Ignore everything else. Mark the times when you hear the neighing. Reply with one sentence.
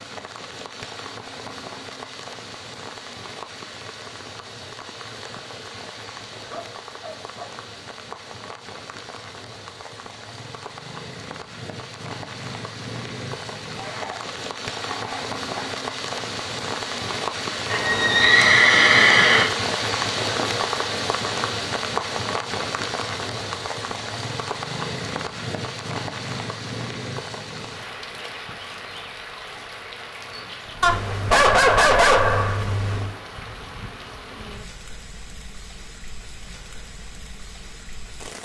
The neighing can be heard from 17.7 to 19.4 s.